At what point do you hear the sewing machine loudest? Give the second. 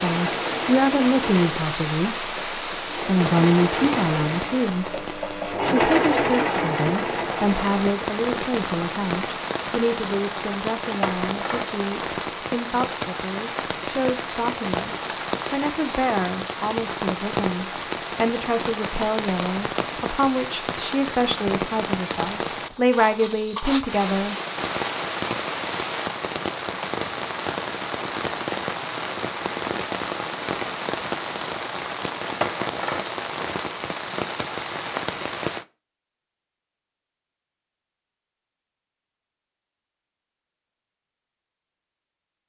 6 s.